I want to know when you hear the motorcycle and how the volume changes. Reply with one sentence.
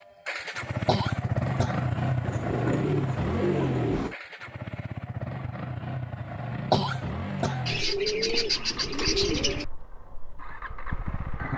You can hear the motorcycle from 0.2 to 11.5 s, getting quieter.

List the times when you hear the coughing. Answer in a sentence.
You can hear the coughing from 0.8 to 1.9 s and from 6.7 to 7.7 s.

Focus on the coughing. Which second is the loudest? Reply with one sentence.
The volume of the coughing peaks at 7 seconds.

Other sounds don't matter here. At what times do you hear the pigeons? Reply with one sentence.
The pigeons can be heard from 2.2 to 4.2 s and from 7.7 to 9.7 s.